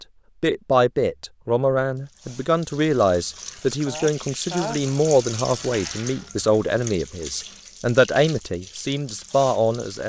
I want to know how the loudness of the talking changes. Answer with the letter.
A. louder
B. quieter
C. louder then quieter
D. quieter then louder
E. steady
E.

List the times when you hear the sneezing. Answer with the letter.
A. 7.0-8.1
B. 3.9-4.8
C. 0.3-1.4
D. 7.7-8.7
B.